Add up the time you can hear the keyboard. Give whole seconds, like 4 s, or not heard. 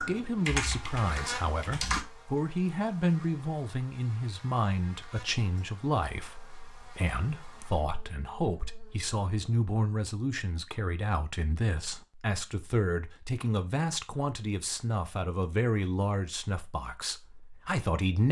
2 s.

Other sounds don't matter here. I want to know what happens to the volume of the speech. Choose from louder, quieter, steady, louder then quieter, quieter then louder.
steady.